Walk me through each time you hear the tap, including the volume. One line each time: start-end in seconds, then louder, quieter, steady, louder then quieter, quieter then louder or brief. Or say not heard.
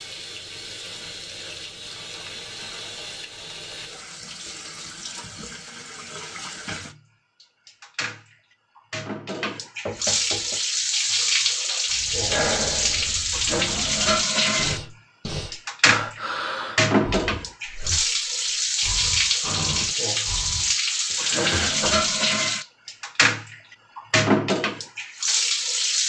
0.0-26.0 louder.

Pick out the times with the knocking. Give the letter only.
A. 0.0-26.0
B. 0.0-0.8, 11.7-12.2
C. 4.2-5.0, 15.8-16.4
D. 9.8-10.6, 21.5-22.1
D.